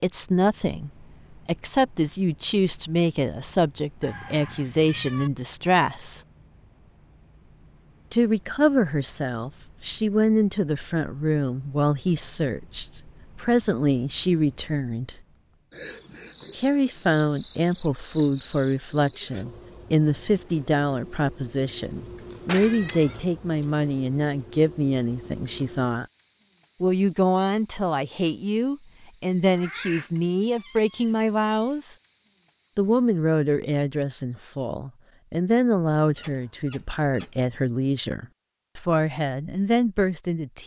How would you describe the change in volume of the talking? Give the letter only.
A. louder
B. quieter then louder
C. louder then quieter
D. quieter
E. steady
E.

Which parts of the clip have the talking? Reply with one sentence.
The talking can be heard from 0.0 to 6.2 s, from 8.1 to 15.2 s, from 16.5 to 26.1 s, from 26.8 to 31.9 s and from 32.8 to 40.6 s.